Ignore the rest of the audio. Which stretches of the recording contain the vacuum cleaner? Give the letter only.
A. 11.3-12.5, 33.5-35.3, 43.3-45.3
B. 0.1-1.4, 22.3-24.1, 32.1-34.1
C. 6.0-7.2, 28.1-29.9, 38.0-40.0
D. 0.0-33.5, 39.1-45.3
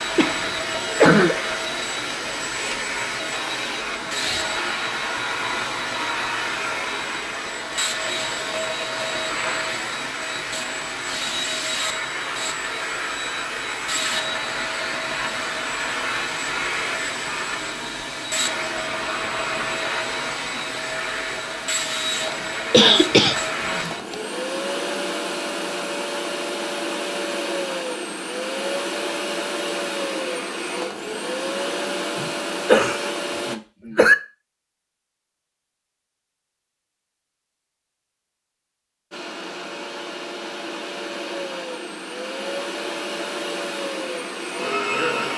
D.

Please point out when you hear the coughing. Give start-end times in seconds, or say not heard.
0.1-1.4, 22.3-24.1, 32.1-34.1.